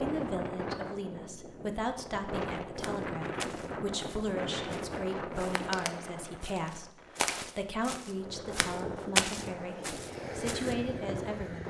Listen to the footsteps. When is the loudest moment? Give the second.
9 s.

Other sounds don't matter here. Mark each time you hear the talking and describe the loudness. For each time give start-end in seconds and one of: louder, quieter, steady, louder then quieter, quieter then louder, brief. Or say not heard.
0.0-11.6 steady.